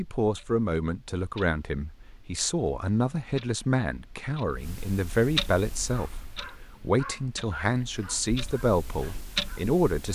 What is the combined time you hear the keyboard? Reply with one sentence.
You can't hear the keyboard here.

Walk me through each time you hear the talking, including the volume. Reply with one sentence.
The talking can be heard from 0.0 to 10.0 s, at a steady volume.